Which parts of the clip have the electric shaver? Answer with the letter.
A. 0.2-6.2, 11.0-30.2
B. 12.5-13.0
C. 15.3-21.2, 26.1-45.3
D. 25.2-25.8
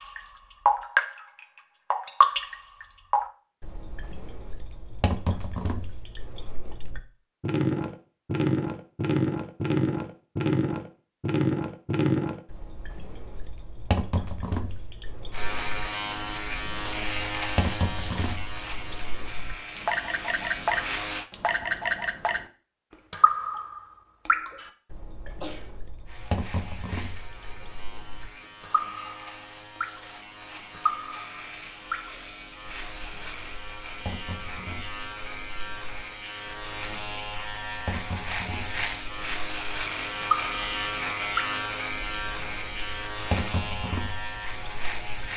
C.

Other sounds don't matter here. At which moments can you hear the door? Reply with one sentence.
The door can't be heard in this clip.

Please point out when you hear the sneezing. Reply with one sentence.
The sneezing can be heard from 25.2 to 25.8 s.